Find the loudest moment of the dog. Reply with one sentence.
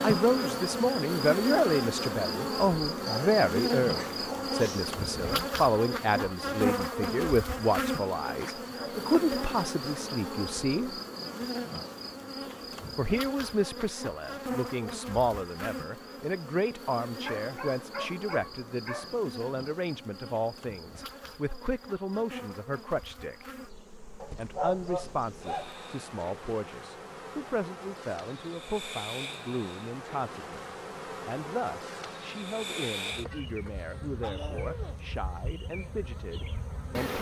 The volume of the dog peaks at 25 seconds.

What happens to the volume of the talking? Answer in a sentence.
The loudness of the talking goes down.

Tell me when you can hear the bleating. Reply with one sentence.
The bleating can't be heard in this clip.